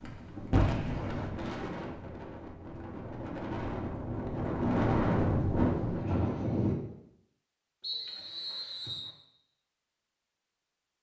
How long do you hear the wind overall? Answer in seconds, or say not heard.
7 s.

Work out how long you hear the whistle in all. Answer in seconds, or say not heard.
2 s.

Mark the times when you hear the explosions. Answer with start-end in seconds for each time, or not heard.
0.5-1.4.